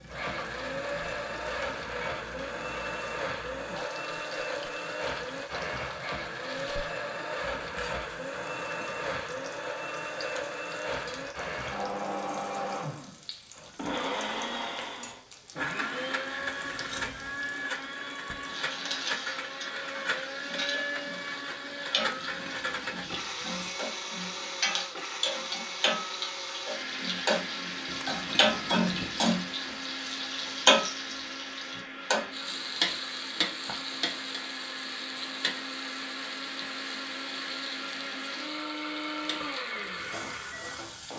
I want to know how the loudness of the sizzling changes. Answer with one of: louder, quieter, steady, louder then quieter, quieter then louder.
louder then quieter.